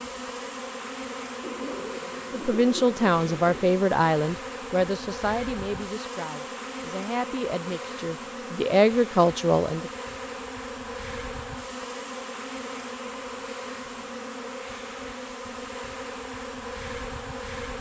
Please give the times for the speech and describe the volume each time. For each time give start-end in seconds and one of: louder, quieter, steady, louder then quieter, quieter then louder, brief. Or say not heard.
2.3-9.9 quieter then louder.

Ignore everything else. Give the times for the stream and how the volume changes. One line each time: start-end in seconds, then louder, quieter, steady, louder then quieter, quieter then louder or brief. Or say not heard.
not heard.